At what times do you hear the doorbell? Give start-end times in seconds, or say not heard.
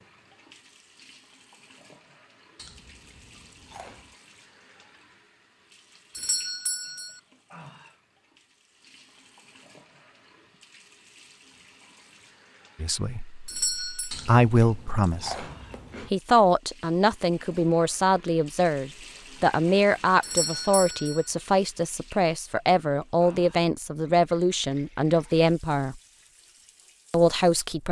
6.2-7.2, 13.4-14.1, 20.2-21.3.